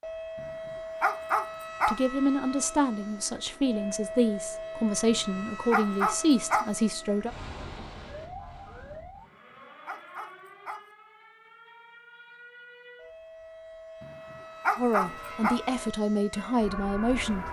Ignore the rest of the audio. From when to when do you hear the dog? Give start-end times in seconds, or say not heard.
0.3-2.0, 5.0-6.7, 9.2-10.8, 14.0-15.6.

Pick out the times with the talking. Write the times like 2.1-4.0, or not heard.
1.9-7.3, 14.8-17.4.